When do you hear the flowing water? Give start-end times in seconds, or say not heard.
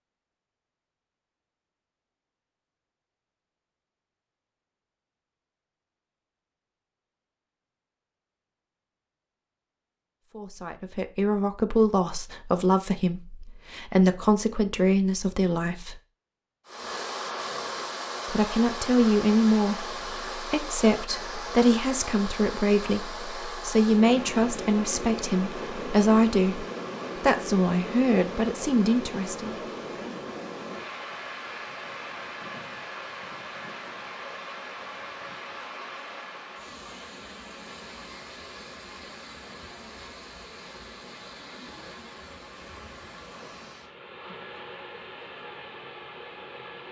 16.6-46.8.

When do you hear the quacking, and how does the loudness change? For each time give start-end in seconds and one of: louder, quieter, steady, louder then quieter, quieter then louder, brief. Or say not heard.
not heard.